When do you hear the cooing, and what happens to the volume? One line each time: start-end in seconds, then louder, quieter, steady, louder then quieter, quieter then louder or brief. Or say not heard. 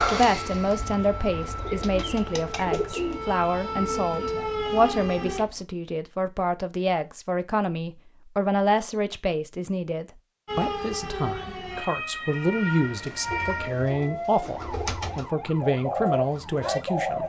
0.0-5.7 louder then quieter
12.9-17.2 louder.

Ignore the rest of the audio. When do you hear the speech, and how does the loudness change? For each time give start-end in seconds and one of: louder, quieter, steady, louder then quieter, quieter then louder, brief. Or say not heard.
0.1-17.2 steady.